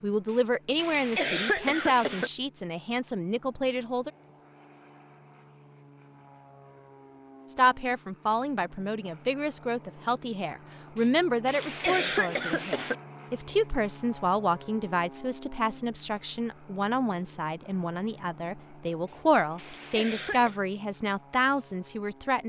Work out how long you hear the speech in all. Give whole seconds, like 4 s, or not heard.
19 s.